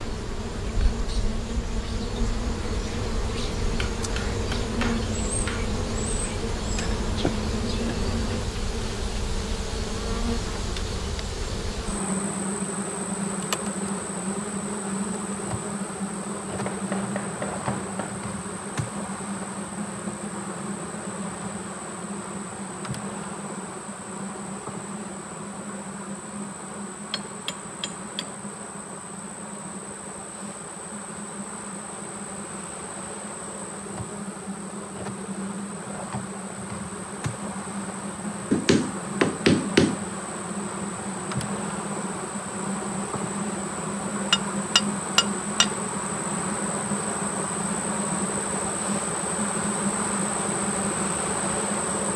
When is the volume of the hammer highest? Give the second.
40 s.